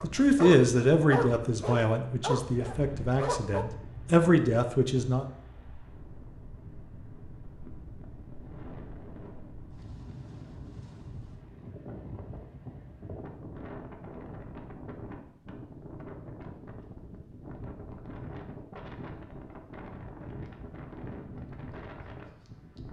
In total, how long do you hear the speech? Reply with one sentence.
The speech can be heard for 5 seconds in total.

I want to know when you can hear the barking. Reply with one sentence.
You can hear the barking from 0.0 to 3.6 s.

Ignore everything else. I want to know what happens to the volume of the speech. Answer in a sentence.
The loudness of the speech goes down, then up.